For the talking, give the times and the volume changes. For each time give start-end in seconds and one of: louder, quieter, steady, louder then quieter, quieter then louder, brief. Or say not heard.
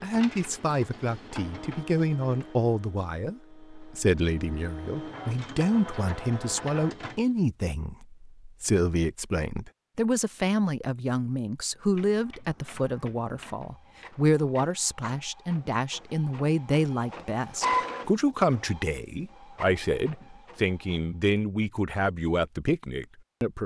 0.0-23.6 steady.